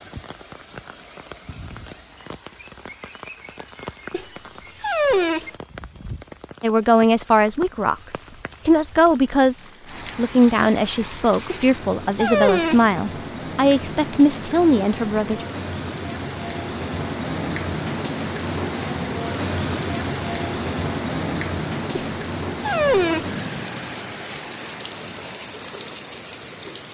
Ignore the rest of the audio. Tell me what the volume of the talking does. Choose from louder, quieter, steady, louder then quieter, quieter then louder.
steady.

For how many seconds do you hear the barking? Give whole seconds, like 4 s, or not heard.
4 s.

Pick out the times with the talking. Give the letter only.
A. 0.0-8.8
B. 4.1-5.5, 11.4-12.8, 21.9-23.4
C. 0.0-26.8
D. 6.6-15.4
D.